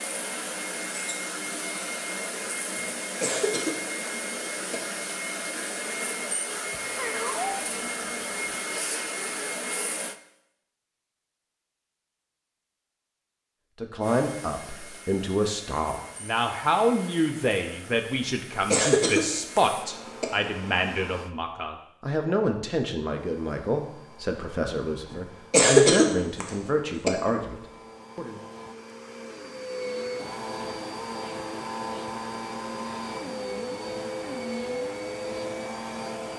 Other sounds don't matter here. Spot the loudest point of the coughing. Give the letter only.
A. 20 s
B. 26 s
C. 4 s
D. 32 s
B.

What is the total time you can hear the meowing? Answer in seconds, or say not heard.
2 s.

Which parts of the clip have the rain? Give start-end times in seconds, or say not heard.
not heard.